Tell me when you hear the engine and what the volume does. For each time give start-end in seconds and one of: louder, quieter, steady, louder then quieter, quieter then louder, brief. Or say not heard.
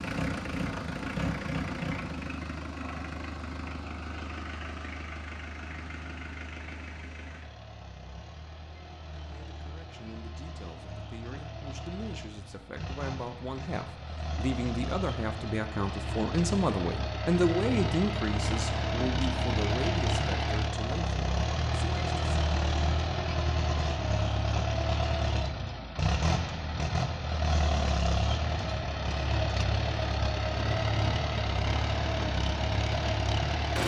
0.0-33.8 quieter then louder.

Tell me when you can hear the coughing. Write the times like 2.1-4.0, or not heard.
not heard.